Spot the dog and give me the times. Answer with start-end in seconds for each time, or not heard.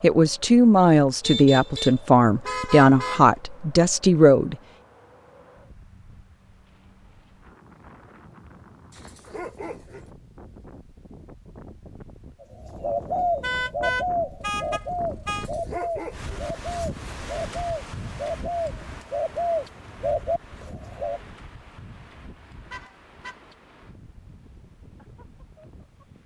8.9-10.1, 15.2-16.3.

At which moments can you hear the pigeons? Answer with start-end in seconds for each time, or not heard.
12.4-21.2.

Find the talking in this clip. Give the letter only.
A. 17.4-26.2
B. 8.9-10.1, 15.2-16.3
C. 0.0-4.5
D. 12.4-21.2
C.